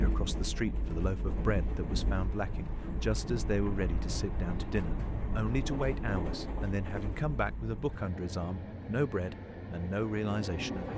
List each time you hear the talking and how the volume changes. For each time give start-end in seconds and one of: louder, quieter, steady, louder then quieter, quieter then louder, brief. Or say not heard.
0.0-10.9 steady.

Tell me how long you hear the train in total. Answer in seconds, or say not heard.
11 s.